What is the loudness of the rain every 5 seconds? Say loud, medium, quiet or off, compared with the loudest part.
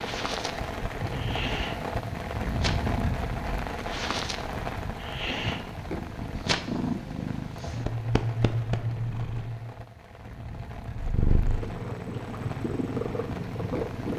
loud, medium, medium.